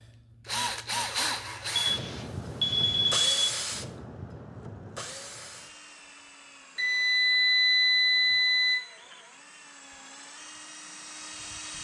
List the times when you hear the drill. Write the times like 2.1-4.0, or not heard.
0.5-11.7.